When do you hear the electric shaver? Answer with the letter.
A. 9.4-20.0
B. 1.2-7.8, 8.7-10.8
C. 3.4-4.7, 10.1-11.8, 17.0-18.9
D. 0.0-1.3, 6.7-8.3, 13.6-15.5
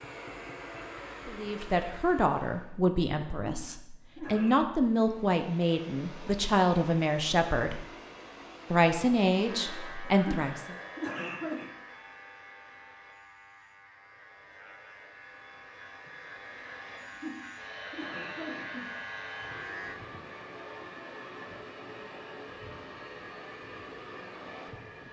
A.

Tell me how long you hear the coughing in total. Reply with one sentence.
You can hear the coughing for 5 seconds altogether.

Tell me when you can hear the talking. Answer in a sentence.
You can hear the talking from 1.2 to 7.8 s and from 8.7 to 10.8 s.